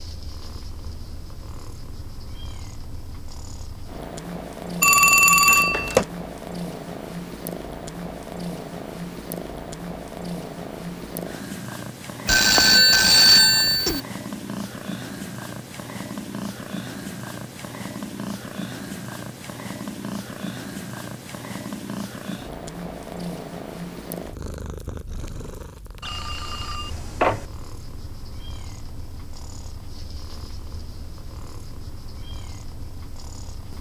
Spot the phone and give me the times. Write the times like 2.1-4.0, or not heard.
4.8-6.0, 12.2-14.0, 26.0-27.4.